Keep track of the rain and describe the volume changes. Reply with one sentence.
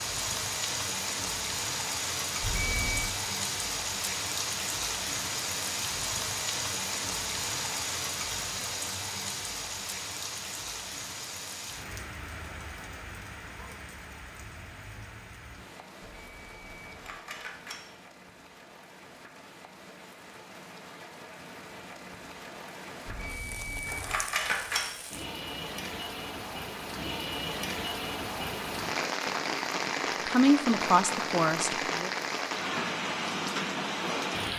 The volume of the rain goes down, then up.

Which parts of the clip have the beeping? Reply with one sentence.
You can hear the beeping from 2.4 to 3.1 s, from 16.0 to 17.8 s and from 23.1 to 24.9 s.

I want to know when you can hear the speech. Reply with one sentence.
You can hear the speech from 30.2 to 32.1 s.